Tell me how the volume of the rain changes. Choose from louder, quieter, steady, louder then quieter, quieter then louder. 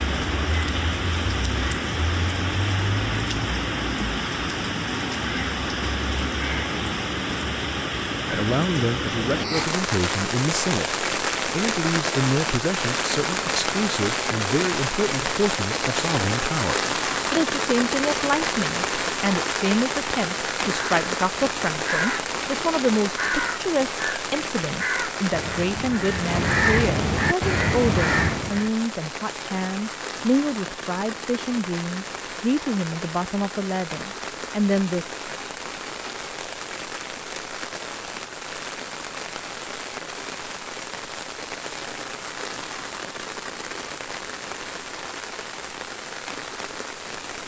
quieter.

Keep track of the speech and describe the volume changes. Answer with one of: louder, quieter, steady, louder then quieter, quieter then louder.
steady.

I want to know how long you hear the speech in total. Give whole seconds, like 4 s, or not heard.
27 s.